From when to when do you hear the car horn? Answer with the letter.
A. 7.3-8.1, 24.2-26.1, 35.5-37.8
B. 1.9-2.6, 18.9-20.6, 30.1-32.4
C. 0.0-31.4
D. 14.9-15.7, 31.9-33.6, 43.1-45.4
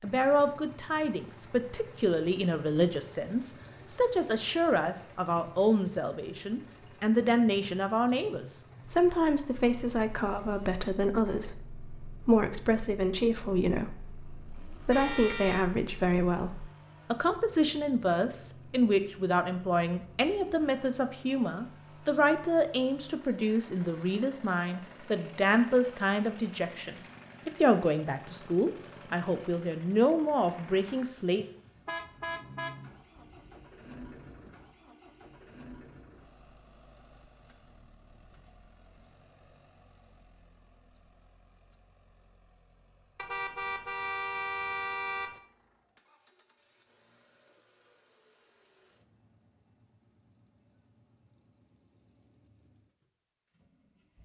D.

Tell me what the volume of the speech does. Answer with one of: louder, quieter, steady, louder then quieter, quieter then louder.
steady.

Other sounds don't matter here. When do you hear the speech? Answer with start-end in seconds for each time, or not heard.
0.0-31.4.